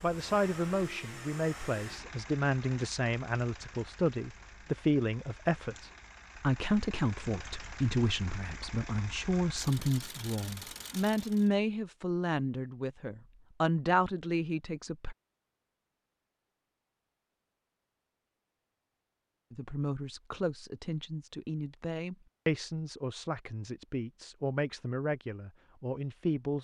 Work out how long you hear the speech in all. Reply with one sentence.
The speech can be heard for 22 seconds in total.